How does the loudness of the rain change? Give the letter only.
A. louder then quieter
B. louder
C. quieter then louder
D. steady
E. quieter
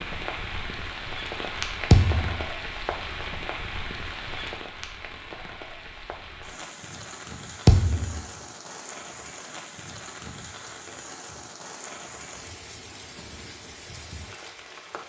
E.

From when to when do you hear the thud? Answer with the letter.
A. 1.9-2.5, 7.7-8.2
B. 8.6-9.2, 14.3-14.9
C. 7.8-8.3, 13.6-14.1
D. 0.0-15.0
A.